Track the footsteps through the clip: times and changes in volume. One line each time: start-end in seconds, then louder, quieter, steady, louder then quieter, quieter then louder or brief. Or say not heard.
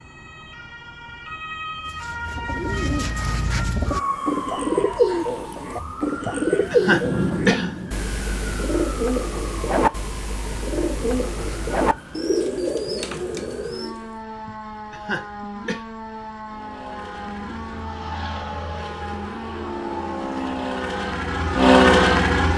not heard.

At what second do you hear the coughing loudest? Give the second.
7 s.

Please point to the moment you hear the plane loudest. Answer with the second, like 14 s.
22 s.